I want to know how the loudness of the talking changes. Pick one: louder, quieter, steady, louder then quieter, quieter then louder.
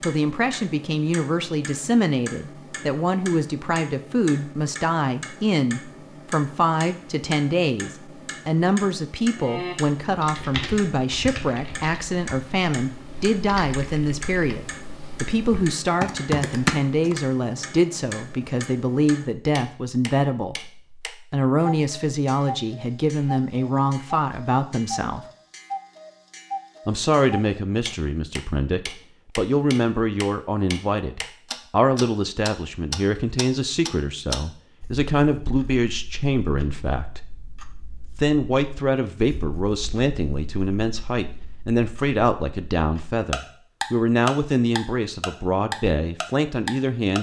steady.